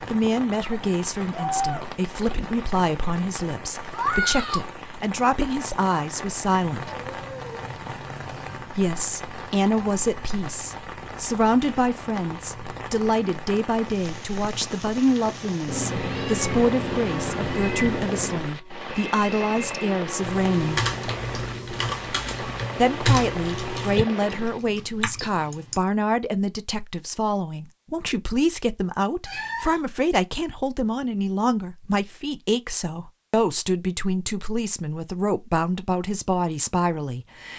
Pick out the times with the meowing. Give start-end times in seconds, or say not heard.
6.8-8.7, 15.7-18.4, 29.2-29.9.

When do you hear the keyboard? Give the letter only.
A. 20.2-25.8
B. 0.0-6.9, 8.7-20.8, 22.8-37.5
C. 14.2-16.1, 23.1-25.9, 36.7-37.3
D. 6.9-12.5
A.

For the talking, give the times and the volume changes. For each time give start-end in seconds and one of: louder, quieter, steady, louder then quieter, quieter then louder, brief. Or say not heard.
0.0-6.9 steady
8.7-20.8 steady
22.8-37.5 steady.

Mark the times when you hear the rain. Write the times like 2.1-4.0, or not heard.
0.0-24.6.